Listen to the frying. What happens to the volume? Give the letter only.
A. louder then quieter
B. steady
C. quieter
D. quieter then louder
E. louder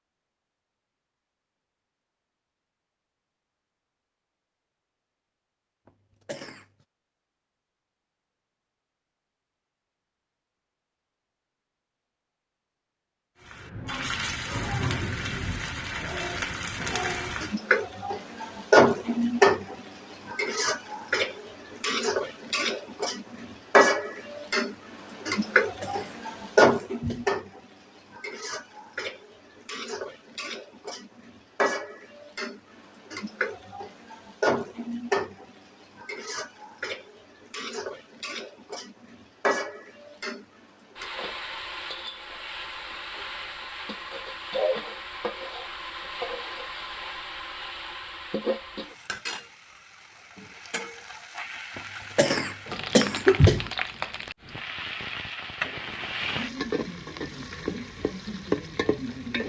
C.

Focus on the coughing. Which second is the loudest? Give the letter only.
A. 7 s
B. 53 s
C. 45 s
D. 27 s
B.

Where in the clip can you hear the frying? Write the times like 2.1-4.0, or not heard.
13.4-59.4.